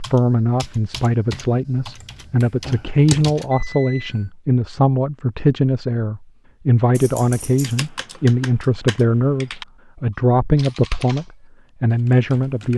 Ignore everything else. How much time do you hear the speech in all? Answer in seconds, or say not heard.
13 s.